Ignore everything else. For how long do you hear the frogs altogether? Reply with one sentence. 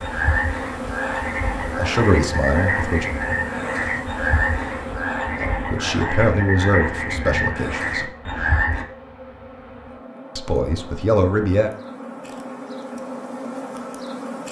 The frogs can be heard for 9 seconds in total.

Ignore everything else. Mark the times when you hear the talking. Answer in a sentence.
The talking can be heard from 1.8 to 3.0 s, from 5.4 to 8.1 s and from 10.3 to 11.7 s.